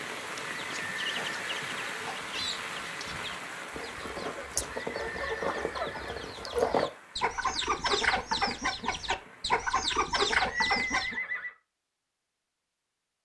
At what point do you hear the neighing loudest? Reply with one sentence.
The loudest moment of the neighing is at 11 seconds.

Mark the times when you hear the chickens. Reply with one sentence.
The chickens can be heard from 0.5 to 11.2 s.